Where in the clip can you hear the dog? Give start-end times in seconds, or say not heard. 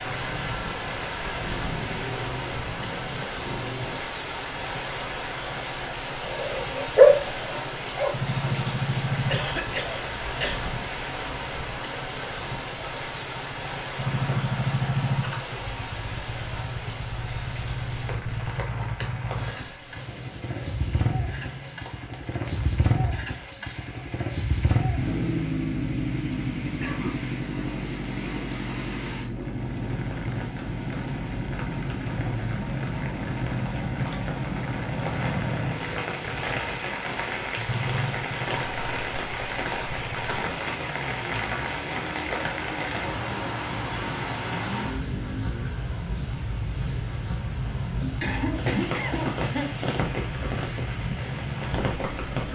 6.2-8.1.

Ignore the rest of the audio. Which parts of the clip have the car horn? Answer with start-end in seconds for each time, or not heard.
not heard.